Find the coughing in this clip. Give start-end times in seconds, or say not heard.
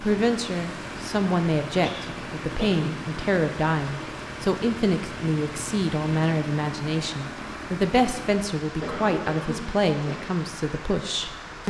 1.8-3.0, 8.8-10.2.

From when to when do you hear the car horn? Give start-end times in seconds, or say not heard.
not heard.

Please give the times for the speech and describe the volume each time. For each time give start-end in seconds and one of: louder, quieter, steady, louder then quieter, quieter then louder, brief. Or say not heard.
0.0-11.6 steady.